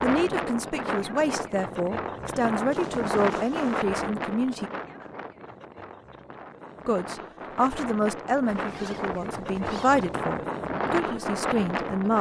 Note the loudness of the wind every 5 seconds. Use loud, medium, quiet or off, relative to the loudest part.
loud, medium, loud.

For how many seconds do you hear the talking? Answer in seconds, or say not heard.
10 s.